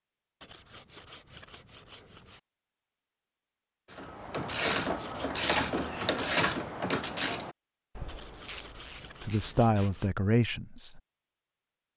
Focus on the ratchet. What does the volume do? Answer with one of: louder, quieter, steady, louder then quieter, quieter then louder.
quieter.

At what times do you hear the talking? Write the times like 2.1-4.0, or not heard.
9.2-11.0.